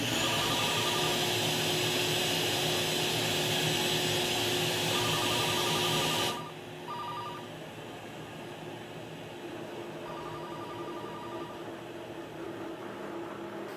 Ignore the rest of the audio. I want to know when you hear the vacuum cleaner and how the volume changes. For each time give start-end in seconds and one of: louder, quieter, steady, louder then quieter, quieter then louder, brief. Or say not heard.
0.0-13.7 quieter.